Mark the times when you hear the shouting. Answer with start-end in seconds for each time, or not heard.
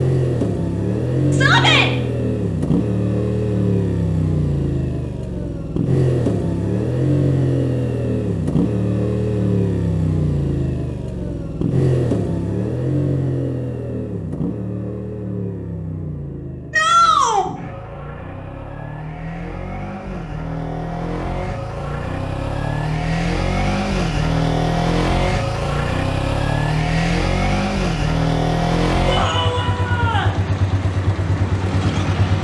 1.3-1.9, 16.7-17.4, 29.1-30.4.